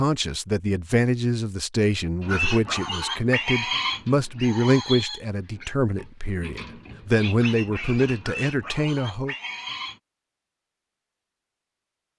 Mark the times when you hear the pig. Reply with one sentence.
You can hear the pig from 2.2 to 10.0 s.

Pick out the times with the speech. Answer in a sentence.
You can hear the speech from 0.0 to 9.3 s.